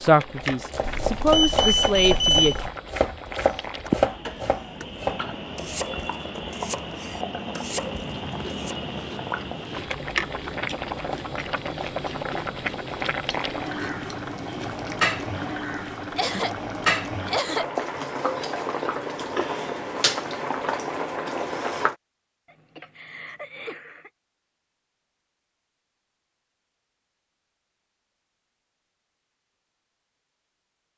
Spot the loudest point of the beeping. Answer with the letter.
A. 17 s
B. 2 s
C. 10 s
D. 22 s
B.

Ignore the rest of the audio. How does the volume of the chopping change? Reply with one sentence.
The volume of the chopping goes down.